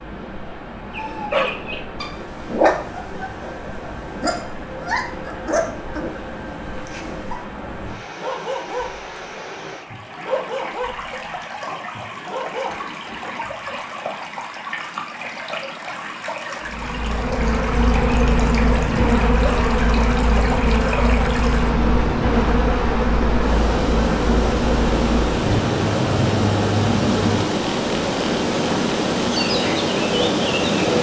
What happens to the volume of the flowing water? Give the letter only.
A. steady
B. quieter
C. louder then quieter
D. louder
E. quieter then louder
D.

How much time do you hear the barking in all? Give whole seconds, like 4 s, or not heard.
12 s.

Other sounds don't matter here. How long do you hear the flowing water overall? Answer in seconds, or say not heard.
31 s.